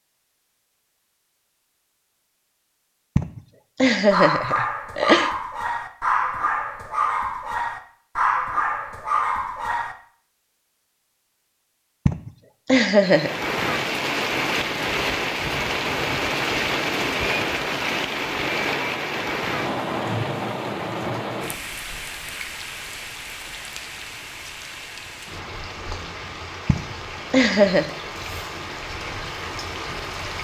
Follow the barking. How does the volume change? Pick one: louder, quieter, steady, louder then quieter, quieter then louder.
steady.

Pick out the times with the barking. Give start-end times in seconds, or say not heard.
4.1-9.9.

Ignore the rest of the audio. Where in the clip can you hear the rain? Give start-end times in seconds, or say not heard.
12.9-30.3.